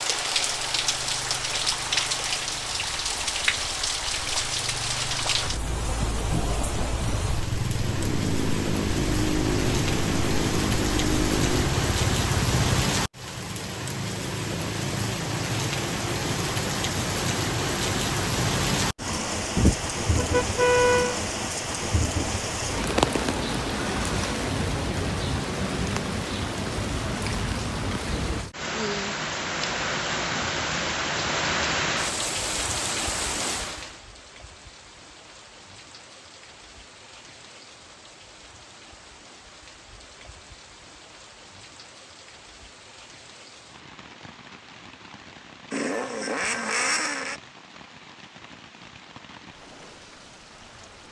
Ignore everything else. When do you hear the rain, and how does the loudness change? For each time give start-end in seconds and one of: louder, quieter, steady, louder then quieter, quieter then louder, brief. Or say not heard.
0.0-51.0 quieter.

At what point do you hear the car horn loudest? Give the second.
21 s.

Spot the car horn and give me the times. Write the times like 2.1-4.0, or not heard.
19.6-21.1.